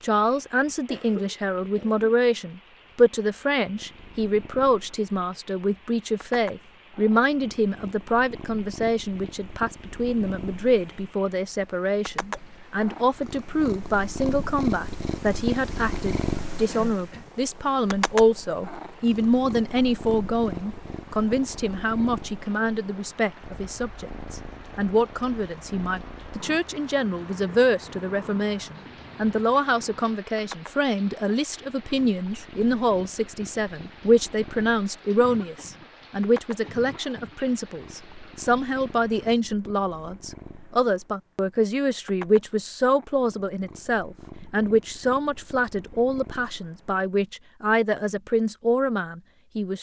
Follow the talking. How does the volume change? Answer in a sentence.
The volume of the talking stays about the same.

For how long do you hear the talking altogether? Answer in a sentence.
The talking can be heard for 50 seconds in total.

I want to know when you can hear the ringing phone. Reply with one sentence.
The ringing phone can't be heard in this clip.